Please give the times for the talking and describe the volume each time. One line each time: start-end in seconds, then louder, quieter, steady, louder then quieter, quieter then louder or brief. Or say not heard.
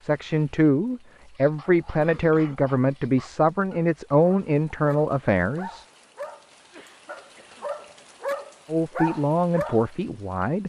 0.0-5.8 steady
8.7-10.6 brief.